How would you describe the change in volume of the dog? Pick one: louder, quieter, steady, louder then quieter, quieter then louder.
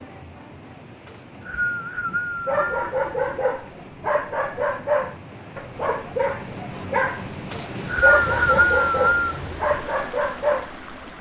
steady.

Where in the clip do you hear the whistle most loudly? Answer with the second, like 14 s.
8 s.